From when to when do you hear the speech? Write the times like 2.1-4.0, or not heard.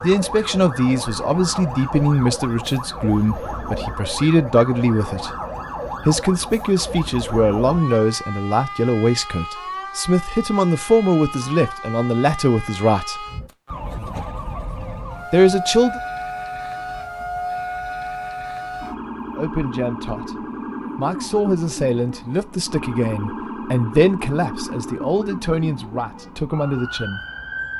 0.0-5.3, 6.0-13.2, 15.3-16.0, 19.4-20.4, 20.9-27.2.